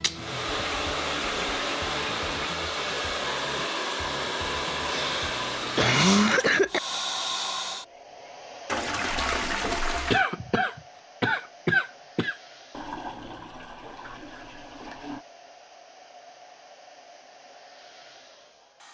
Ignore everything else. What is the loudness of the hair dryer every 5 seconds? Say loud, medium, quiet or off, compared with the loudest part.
loud, loud, quiet, quiet.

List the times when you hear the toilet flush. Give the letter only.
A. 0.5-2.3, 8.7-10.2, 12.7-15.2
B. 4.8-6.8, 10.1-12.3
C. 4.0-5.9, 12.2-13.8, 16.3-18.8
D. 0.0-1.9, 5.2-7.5
A.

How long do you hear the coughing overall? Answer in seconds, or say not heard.
4 s.